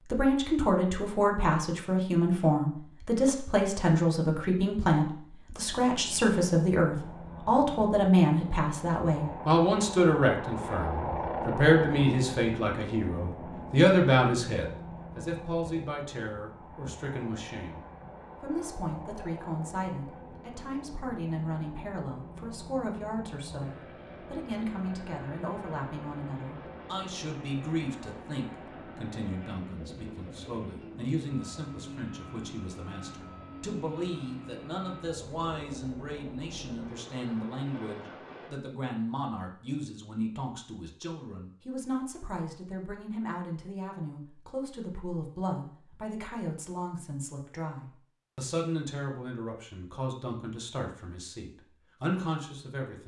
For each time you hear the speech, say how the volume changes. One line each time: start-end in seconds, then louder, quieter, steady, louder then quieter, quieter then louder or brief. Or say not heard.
0.1-53.0 quieter.